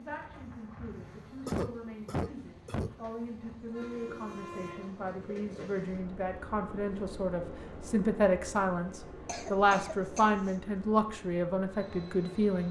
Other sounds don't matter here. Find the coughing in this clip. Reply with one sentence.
The coughing can be heard from 1.4 to 3.0 s and from 9.2 to 10.6 s.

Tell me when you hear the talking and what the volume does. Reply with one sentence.
The talking can be heard from 0.0 to 12.6 s, getting louder.